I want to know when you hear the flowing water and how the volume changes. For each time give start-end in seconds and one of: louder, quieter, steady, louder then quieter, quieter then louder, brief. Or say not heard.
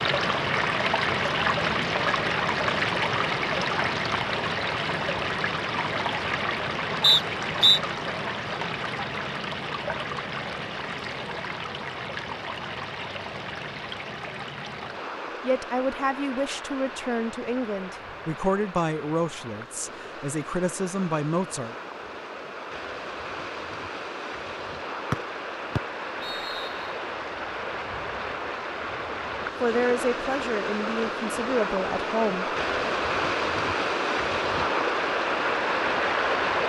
0.0-36.6 quieter then louder.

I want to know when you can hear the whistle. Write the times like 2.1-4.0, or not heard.
7.0-7.8, 25.1-26.9.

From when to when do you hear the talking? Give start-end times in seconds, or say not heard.
15.4-21.8, 29.6-32.9.